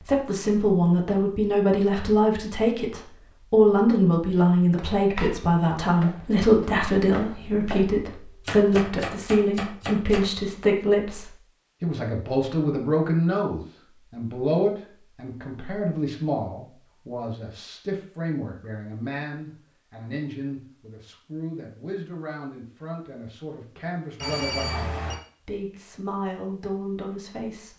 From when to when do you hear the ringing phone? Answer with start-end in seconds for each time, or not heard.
24.1-25.1.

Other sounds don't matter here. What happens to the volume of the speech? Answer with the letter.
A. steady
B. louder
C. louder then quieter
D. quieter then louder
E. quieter
E.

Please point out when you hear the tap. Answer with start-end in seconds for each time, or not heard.
not heard.